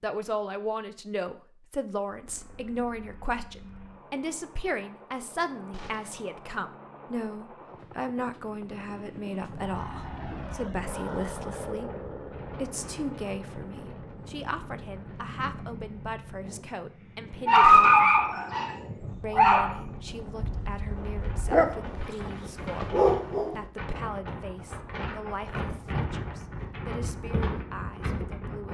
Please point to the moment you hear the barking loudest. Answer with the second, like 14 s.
18 s.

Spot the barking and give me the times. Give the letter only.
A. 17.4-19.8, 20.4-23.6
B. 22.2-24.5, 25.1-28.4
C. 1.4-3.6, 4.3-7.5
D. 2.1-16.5
A.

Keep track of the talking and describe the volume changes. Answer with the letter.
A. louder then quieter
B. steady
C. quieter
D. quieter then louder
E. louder
C.